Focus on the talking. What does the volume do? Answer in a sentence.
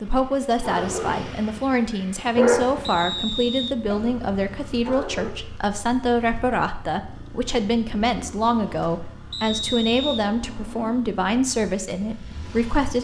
The loudness of the talking stays about the same.